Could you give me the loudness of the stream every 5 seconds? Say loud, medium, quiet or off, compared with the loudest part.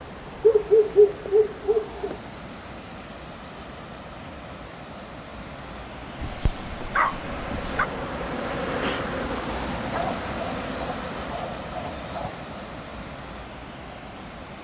medium, loud, loud.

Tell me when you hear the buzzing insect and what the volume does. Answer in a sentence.
You can hear the buzzing insect from 7.2 to 11.3 s, getting louder then quieter.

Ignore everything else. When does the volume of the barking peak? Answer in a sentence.
The volume of the barking peaks at 1 second.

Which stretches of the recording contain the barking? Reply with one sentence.
You can hear the barking from 0.4 to 2.1 s, from 6.2 to 7.8 s and from 9.9 to 12.4 s.